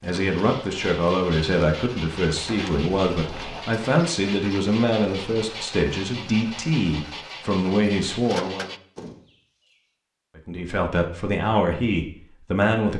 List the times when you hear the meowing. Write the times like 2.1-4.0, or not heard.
not heard.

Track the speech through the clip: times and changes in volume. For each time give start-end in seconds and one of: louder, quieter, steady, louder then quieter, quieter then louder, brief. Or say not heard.
0.0-8.7 steady
10.3-12.9 brief.